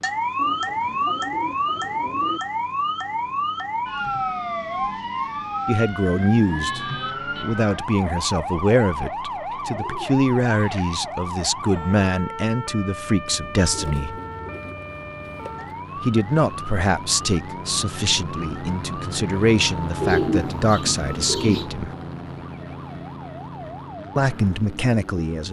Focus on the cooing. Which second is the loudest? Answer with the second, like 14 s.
20 s.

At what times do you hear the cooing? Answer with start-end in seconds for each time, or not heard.
0.3-2.4, 9.5-11.0, 13.3-15.8, 20.0-21.7.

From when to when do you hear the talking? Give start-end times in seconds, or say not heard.
5.7-14.2, 16.0-21.9, 24.1-25.4.